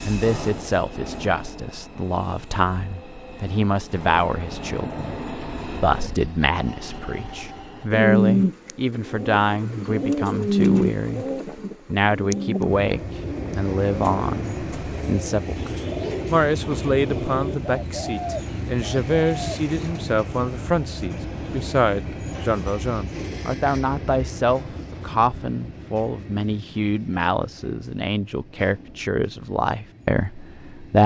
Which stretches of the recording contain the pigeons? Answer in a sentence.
You can hear the pigeons from 7.9 to 19.6 s.